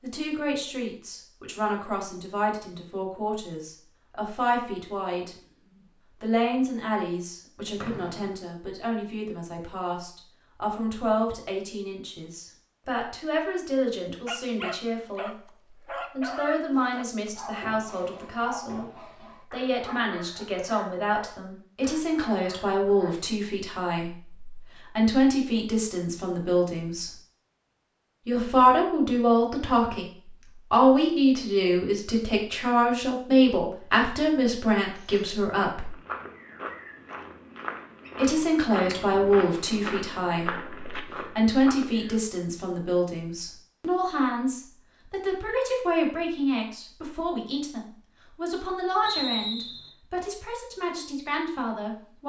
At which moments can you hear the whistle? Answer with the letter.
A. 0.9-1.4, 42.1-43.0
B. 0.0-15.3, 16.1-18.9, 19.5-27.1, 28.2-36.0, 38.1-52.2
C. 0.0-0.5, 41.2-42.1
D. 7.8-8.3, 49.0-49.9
D.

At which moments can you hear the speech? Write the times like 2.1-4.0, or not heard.
0.0-15.3, 16.1-18.9, 19.5-27.1, 28.2-36.0, 38.1-52.2.